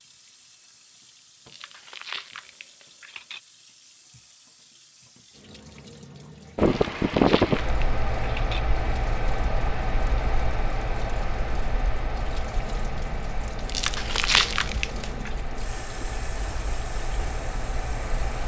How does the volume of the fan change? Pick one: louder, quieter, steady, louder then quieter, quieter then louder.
quieter.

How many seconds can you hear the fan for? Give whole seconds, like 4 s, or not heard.
12 s.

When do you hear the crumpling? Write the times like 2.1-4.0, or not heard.
1.4-3.4, 6.7-8.6, 13.7-15.3.